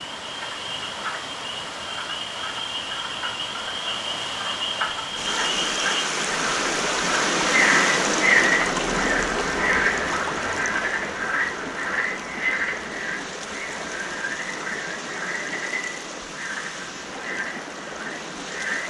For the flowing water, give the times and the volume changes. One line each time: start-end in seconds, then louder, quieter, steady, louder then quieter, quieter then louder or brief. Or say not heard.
0.0-18.8 louder then quieter.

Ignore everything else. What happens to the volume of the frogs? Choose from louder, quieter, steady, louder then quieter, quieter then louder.
louder then quieter.